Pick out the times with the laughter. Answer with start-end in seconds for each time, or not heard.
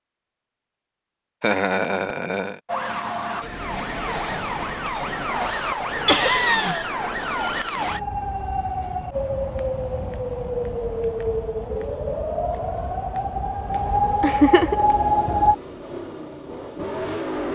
1.4-2.5, 6.0-6.9, 14.2-14.8.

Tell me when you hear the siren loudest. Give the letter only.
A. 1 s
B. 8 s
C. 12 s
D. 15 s
D.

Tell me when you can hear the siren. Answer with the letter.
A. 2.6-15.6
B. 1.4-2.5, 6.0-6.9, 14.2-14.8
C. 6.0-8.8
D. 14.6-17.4
A.